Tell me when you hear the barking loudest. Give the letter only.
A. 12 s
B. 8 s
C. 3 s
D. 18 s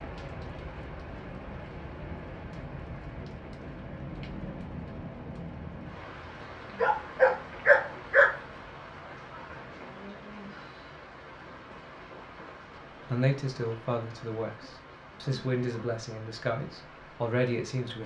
B.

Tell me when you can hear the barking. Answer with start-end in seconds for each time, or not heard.
6.8-8.3.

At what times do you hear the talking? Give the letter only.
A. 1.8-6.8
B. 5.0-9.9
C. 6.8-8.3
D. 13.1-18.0
D.